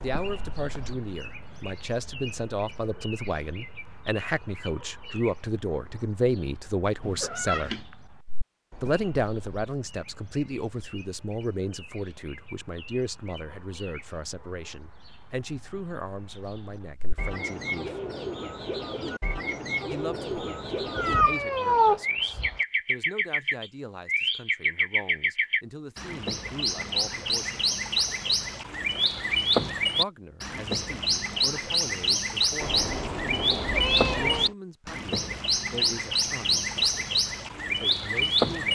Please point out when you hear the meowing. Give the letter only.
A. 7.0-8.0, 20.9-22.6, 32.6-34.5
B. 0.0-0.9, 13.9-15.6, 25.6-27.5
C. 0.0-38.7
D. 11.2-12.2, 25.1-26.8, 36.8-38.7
A.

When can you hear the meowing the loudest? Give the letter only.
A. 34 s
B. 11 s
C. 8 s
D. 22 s
D.